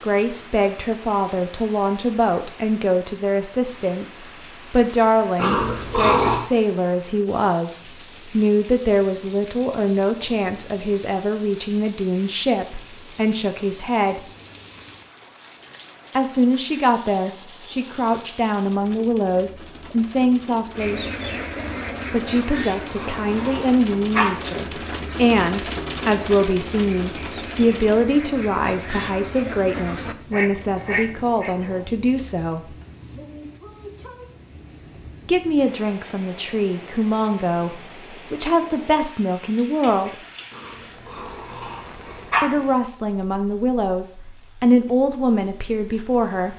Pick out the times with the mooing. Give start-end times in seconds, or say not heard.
not heard.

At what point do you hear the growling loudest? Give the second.
6 s.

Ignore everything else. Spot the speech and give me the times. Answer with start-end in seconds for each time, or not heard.
0.0-14.2, 16.1-21.0, 22.1-32.7, 35.2-40.1, 42.4-46.5.